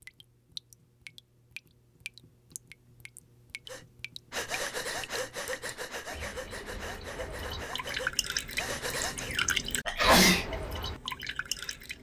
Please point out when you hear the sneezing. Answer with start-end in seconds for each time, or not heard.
9.8-10.5.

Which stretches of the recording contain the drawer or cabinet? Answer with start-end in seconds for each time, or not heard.
not heard.